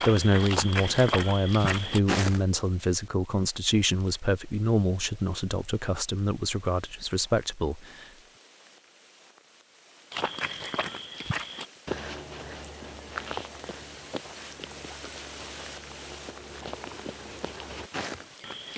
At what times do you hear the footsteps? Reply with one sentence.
You can hear the footsteps from 0.0 to 2.4 s and from 10.1 to 18.7 s.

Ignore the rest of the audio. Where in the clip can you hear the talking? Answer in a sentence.
You can hear the talking from 0.1 to 8.1 s.